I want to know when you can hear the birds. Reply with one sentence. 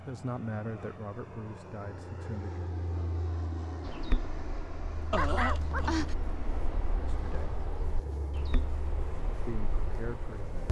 You can hear the birds from 3.9 to 10.6 s.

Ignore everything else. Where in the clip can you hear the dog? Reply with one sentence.
You can hear the dog from 5.1 to 6.2 s.